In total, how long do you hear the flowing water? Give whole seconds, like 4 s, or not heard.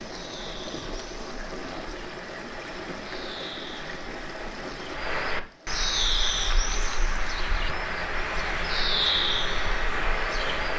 6 s.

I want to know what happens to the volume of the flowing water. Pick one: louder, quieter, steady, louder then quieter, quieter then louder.
steady.